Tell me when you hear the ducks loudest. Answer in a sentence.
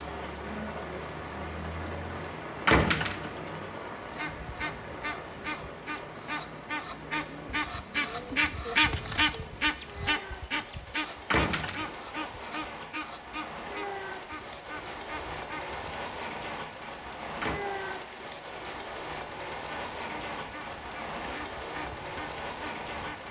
The volume of the ducks peaks at 9 seconds.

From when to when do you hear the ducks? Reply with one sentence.
You can hear the ducks from 4.0 to 15.9 s and from 19.5 to 23.2 s.